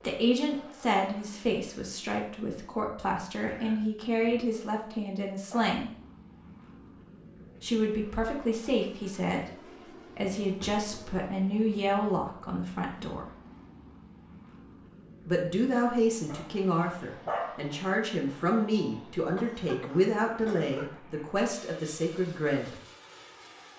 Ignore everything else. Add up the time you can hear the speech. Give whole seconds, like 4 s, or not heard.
18 s.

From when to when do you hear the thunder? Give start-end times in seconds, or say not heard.
not heard.